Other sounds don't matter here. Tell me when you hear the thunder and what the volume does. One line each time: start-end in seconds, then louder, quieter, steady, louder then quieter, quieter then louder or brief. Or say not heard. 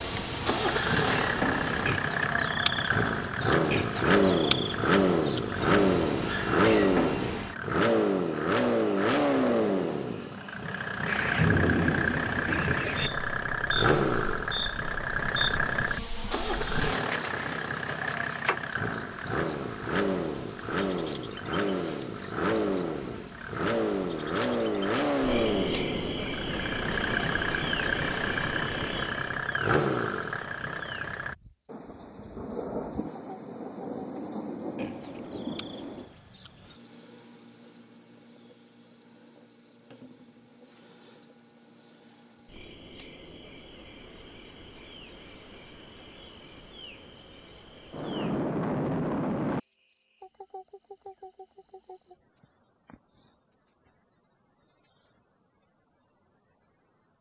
11.1-13.1 brief
31.6-36.1 steady
47.9-49.6 brief.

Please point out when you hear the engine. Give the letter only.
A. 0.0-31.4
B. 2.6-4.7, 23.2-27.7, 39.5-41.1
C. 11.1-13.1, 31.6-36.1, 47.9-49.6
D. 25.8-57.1
A.